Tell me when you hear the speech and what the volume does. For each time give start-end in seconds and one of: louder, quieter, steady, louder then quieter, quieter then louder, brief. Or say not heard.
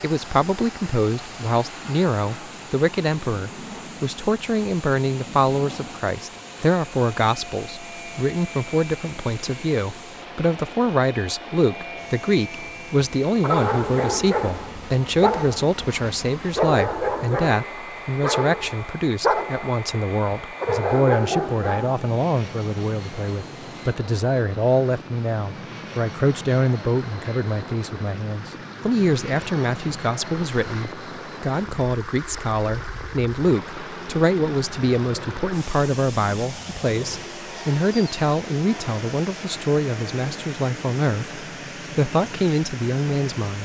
0.0-43.6 steady.